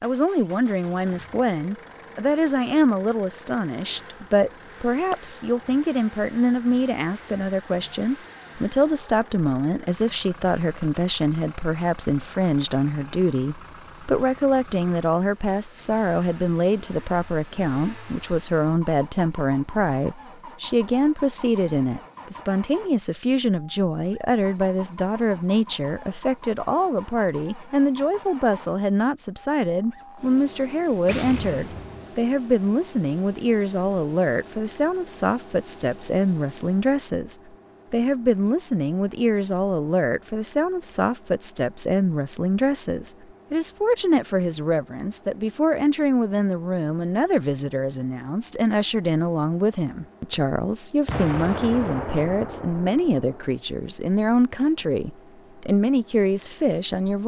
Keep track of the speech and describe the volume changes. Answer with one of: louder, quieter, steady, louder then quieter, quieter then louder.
steady.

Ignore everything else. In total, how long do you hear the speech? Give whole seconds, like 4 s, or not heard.
57 s.